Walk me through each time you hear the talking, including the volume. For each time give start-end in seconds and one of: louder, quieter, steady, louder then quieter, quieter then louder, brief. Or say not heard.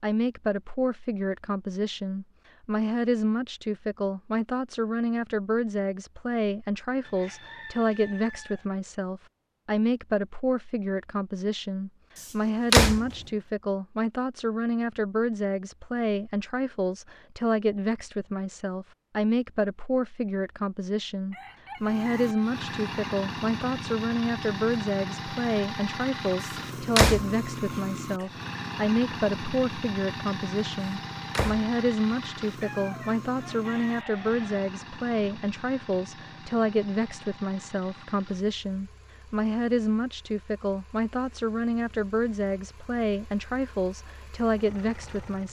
0.0-45.4 steady.